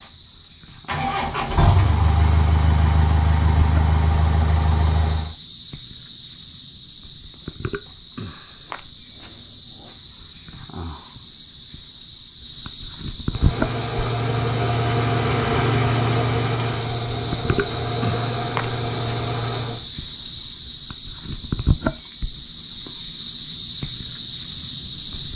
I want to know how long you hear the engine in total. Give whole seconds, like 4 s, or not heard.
12 s.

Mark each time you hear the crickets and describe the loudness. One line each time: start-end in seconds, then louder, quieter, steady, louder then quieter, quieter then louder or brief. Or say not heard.
0.0-25.3 louder.